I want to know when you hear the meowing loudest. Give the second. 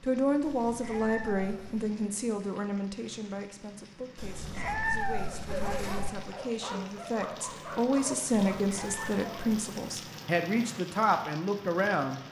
5 s.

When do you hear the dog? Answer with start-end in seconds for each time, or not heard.
5.5-9.4.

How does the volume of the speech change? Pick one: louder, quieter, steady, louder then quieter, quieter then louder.
quieter then louder.